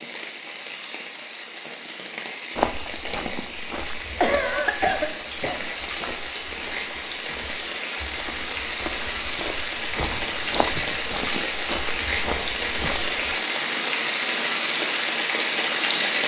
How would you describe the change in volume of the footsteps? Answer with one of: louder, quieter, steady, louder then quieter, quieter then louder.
quieter then louder.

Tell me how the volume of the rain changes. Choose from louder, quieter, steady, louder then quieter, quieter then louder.
louder.